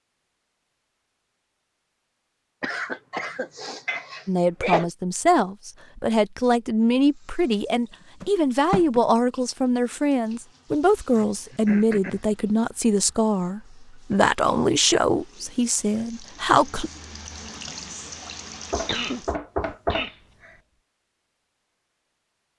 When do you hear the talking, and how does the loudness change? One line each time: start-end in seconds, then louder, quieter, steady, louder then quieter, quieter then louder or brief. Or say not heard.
4.2-16.9 steady.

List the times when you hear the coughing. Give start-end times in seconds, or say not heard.
2.6-4.9, 11.2-12.2, 18.9-20.1.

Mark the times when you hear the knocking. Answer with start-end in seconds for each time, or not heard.
8.2-9.0, 18.7-20.5.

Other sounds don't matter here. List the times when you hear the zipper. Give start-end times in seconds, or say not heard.
not heard.